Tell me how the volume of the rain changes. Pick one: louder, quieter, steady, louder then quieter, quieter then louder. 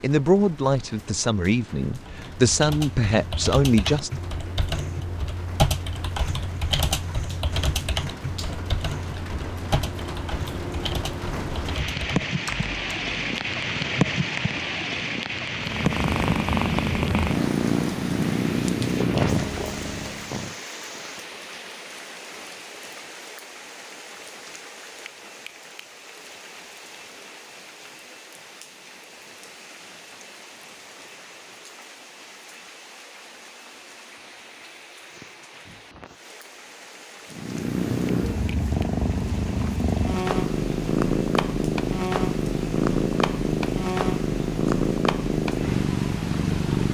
louder then quieter.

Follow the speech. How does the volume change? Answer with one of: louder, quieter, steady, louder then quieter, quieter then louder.
quieter then louder.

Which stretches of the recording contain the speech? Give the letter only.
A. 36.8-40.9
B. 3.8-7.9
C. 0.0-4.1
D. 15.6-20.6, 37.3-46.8
C.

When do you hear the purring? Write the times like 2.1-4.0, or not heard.
15.6-20.6, 37.3-46.8.